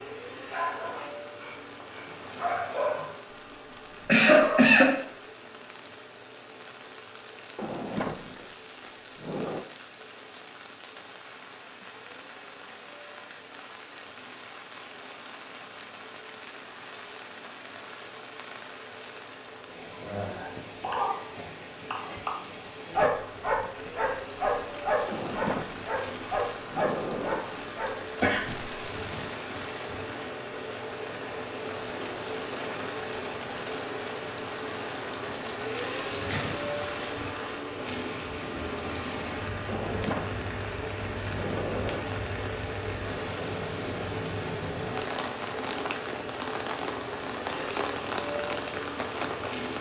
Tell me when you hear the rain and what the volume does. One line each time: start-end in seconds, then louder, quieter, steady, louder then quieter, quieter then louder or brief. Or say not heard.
0.0-49.7 louder.